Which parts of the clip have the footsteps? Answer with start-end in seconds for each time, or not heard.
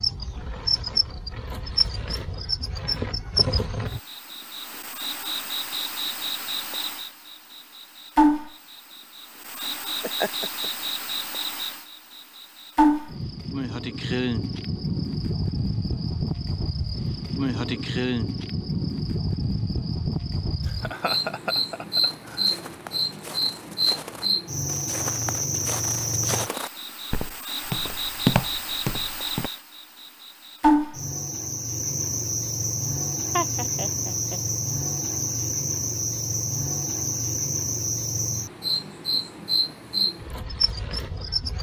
22.0-29.5.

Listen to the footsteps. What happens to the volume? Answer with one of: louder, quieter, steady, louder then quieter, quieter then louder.
louder.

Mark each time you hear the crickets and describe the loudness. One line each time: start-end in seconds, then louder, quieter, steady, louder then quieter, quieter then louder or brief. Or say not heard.
0.0-41.5 steady.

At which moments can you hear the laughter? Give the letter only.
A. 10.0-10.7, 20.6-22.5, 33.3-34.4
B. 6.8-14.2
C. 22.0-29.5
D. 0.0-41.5
A.